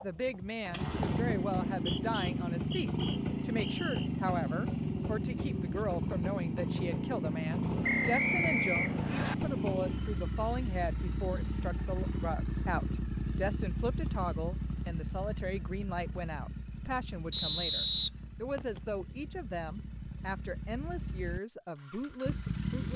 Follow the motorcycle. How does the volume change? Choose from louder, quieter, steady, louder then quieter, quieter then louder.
quieter.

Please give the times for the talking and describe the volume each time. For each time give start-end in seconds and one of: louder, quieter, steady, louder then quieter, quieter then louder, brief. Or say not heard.
0.0-22.9 steady.